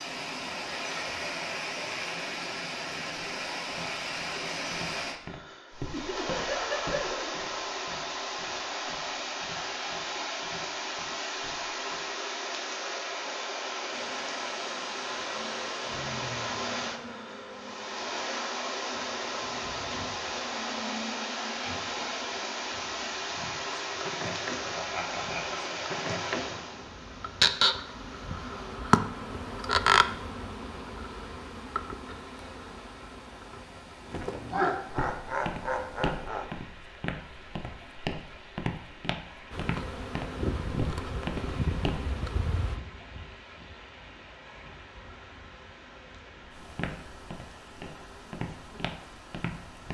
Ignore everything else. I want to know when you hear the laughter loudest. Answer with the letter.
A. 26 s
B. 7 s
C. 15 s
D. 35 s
D.